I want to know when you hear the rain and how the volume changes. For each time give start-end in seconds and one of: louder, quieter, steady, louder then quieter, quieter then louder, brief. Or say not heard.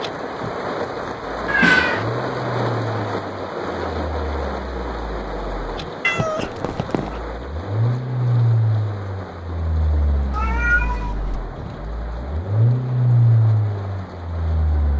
0.0-14.9 quieter.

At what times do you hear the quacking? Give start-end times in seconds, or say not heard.
not heard.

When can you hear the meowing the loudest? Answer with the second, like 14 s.
2 s.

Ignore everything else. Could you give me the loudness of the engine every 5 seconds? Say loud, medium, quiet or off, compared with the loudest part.
medium, loud, loud.